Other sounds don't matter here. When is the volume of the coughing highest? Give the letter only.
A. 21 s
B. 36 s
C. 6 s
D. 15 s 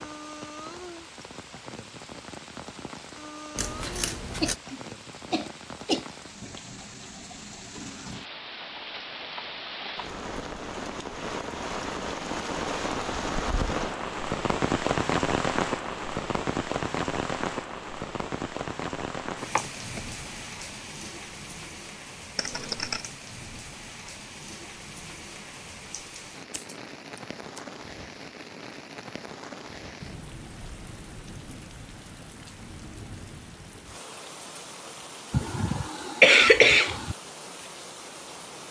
B.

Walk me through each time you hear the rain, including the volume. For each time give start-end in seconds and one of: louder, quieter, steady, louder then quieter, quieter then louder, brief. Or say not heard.
0.0-38.6 louder then quieter.